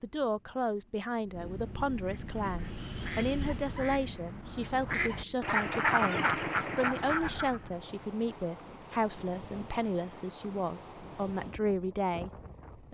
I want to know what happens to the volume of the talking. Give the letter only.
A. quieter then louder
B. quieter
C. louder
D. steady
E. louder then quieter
D.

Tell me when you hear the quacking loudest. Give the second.
6 s.